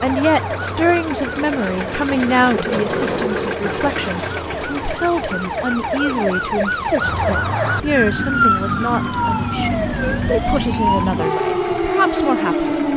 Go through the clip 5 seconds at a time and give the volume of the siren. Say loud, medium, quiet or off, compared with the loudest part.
medium, loud, loud.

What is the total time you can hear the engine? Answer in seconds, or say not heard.
13 s.